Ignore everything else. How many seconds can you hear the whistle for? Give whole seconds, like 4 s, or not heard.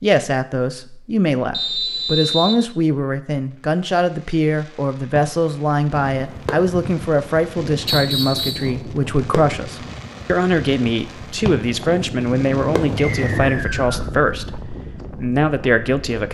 3 s.